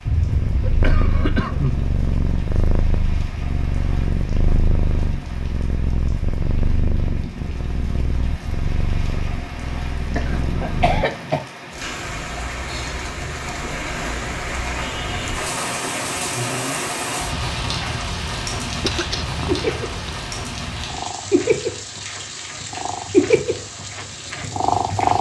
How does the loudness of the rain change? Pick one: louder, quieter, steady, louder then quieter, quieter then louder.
louder then quieter.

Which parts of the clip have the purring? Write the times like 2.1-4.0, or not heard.
0.0-11.1, 19.1-25.1.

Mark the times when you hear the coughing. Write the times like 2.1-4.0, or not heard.
0.1-1.9, 10.2-11.4, 18.8-20.2.